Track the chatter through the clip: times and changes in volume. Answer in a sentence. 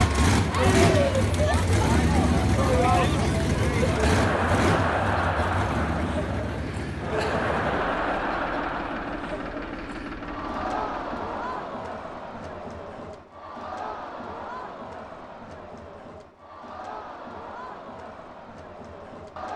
You can hear the chatter from 0.0 to 19.5 s, getting quieter.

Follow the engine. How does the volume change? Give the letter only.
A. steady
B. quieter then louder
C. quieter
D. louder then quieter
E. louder
C.